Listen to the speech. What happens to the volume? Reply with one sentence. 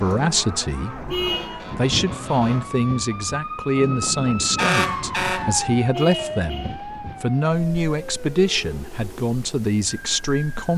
The loudness of the speech stays about the same.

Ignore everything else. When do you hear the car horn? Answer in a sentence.
The car horn can be heard from 1.1 to 1.6 s and from 5.9 to 7.0 s.